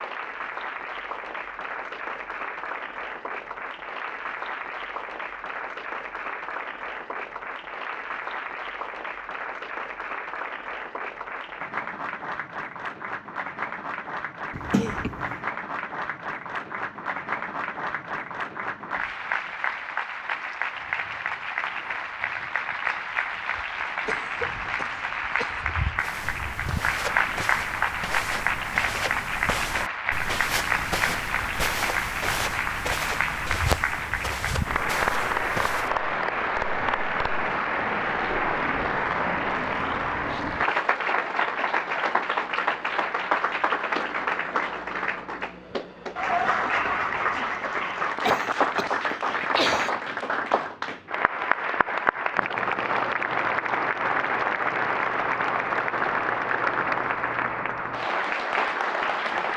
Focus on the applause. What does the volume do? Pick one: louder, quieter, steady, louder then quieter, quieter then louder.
louder.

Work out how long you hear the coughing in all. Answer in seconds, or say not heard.
4 s.